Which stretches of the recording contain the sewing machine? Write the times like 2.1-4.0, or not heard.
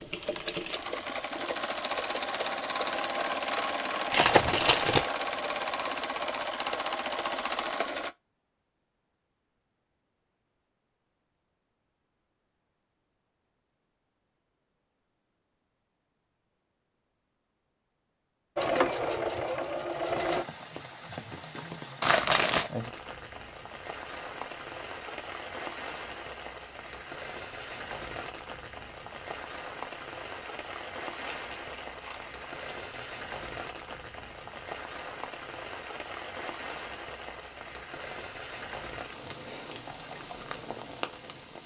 0.0-8.2, 18.6-20.4.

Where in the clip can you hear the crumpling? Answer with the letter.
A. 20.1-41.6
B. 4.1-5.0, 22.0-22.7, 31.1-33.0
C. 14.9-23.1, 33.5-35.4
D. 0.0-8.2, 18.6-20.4
B.